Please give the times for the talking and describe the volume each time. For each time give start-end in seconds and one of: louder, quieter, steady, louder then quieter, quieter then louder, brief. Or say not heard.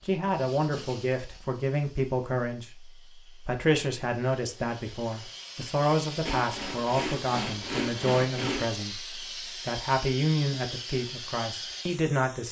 0.1-12.4 steady.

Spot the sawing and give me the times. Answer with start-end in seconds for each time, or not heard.
6.2-8.8.